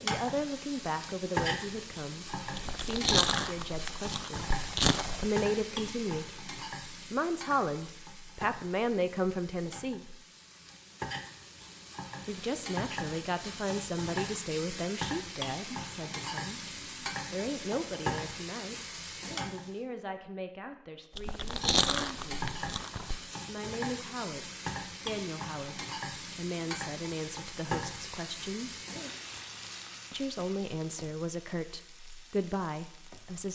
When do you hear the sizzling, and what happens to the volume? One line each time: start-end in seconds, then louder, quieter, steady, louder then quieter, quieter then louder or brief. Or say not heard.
0.0-19.8 quieter then louder
21.2-33.5 quieter.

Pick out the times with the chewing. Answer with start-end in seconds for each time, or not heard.
2.5-5.3, 21.1-23.2.